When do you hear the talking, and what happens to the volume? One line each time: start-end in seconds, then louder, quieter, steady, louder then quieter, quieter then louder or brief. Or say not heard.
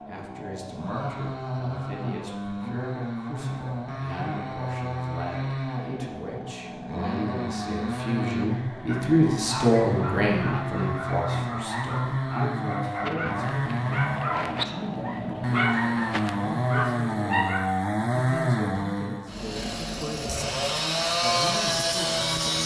0.1-22.6 louder then quieter.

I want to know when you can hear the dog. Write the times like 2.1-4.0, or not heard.
8.8-17.8.